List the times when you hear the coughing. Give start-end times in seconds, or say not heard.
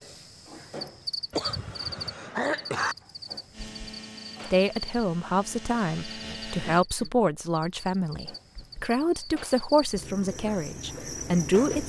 1.3-3.0, 6.2-7.1.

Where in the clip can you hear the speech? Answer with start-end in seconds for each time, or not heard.
4.5-11.8.